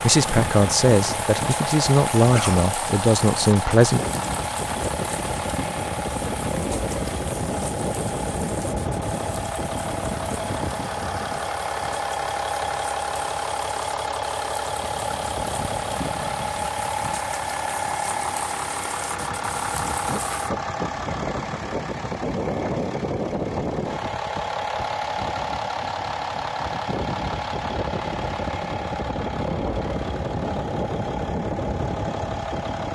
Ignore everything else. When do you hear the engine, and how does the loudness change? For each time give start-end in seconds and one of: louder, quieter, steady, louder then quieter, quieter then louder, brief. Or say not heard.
0.0-32.9 steady.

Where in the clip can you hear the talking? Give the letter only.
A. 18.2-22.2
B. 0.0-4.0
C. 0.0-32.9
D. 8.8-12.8
B.